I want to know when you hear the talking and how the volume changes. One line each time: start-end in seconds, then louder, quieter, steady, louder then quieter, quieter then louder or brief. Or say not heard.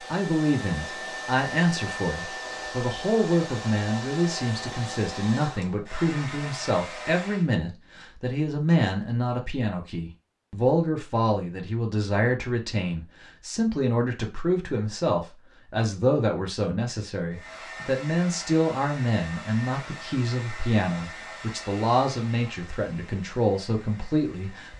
0.1-24.7 steady.